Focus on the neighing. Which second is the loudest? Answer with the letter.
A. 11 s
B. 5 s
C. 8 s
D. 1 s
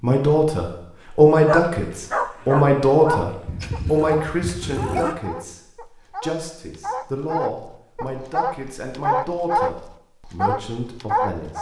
B.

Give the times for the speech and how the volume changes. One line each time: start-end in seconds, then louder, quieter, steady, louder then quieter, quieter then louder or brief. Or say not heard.
0.0-11.5 quieter.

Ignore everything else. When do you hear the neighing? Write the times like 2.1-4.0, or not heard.
3.5-5.2.